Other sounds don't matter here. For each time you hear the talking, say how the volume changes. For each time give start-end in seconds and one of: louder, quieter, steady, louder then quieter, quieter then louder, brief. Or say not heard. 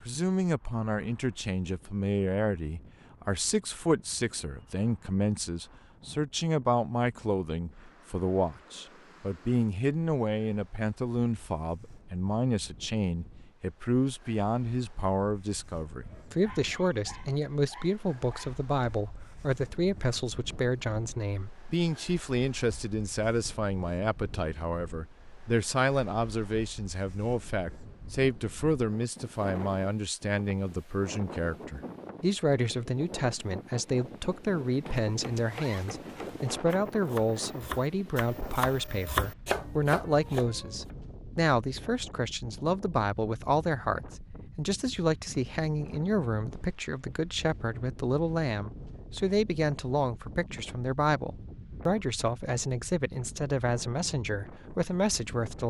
0.0-55.6 steady.